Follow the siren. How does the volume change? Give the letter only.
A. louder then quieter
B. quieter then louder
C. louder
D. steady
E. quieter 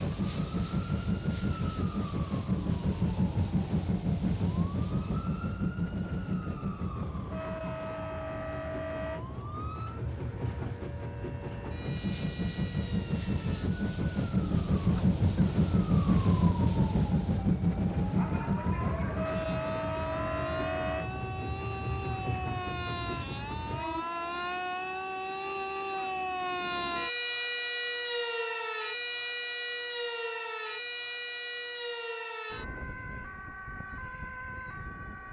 C.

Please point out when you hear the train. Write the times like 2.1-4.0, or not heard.
0.0-24.1.